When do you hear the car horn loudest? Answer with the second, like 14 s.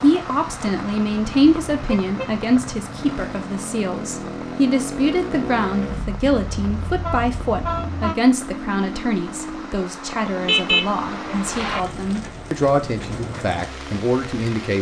11 s.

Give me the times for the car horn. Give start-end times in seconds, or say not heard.
1.2-2.4, 6.3-8.2, 10.4-11.8.